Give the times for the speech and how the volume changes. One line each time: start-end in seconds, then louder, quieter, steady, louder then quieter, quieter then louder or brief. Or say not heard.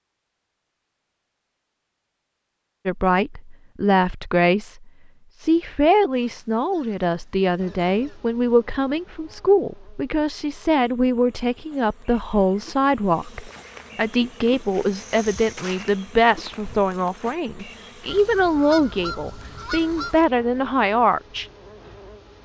2.9-21.4 steady.